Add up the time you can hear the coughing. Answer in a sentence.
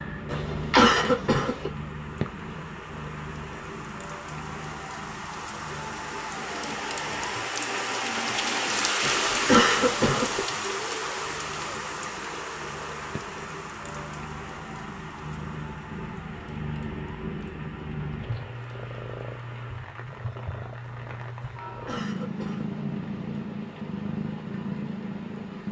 You can hear the coughing for 4 seconds altogether.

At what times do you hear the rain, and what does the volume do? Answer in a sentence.
The rain can be heard from 0.0 to 25.6 s, getting louder then quieter.